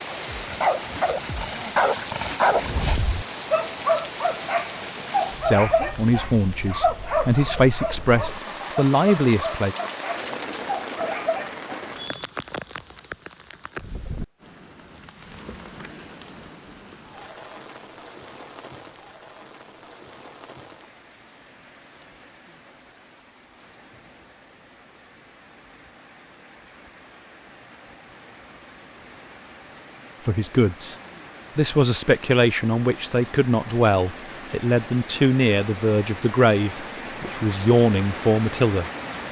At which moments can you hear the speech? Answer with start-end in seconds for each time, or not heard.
5.4-9.8, 30.2-30.9, 31.6-38.9.